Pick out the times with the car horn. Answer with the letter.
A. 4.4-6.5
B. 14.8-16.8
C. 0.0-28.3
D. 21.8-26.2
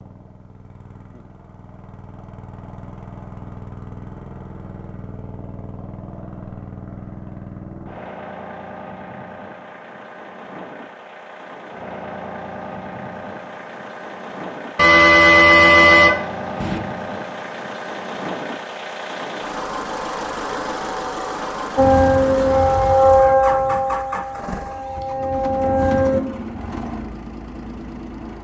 B.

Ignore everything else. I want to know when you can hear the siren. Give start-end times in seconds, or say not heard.
21.8-26.2.